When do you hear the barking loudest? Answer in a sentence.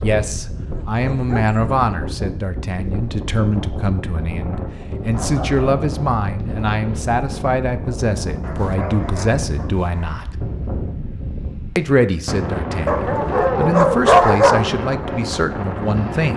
The volume of the barking peaks at 14 seconds.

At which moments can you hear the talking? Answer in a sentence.
You can hear the talking from 0.0 to 10.3 s and from 11.8 to 16.3 s.